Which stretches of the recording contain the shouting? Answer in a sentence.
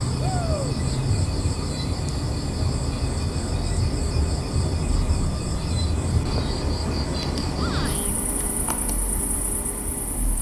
You can hear the shouting from 0.1 to 0.7 s and from 7.5 to 8.1 s.